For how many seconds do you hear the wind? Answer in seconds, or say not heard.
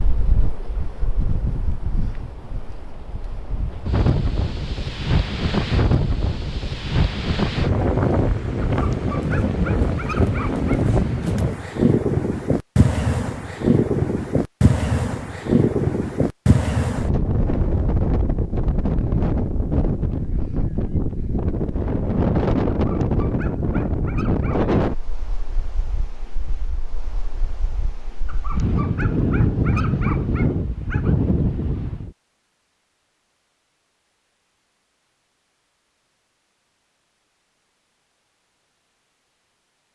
32 s.